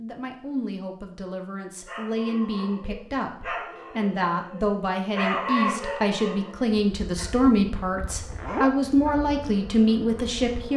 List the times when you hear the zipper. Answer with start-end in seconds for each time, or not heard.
8.0-8.7.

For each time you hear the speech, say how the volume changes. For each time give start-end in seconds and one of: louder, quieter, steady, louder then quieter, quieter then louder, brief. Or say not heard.
0.0-10.7 louder.